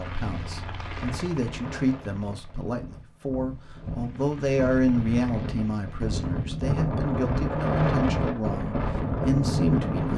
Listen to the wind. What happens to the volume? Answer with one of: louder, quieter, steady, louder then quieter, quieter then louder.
louder.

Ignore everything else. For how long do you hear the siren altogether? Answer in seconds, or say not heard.
not heard.